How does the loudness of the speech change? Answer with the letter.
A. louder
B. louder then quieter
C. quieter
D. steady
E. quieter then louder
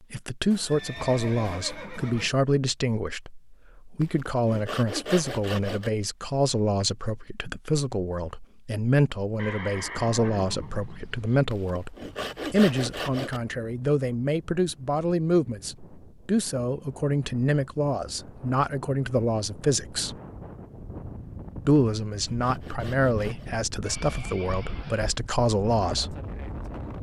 D.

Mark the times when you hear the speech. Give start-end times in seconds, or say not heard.
0.1-20.1, 21.6-26.1.